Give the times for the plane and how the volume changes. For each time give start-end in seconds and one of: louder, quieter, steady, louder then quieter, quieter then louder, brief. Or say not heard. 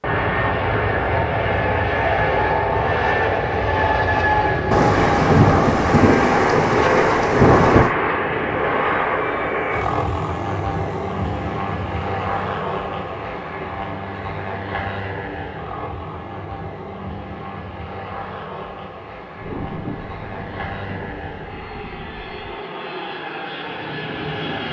0.0-24.6 quieter.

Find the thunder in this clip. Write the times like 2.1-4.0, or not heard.
4.7-8.0, 19.4-22.4.